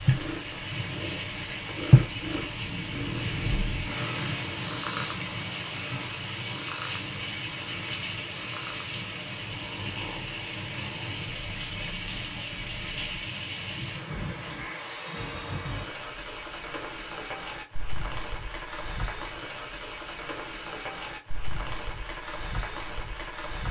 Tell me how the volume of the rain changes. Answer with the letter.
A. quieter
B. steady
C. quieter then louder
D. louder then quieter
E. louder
B.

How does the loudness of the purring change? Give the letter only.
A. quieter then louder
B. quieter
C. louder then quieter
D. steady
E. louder
B.